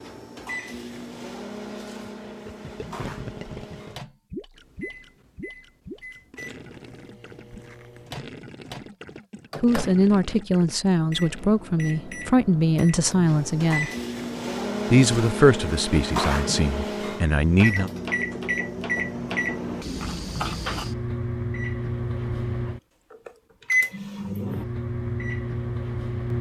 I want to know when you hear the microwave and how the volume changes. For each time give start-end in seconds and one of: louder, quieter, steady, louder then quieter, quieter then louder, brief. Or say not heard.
0.0-26.3 louder.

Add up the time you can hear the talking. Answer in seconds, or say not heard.
7 s.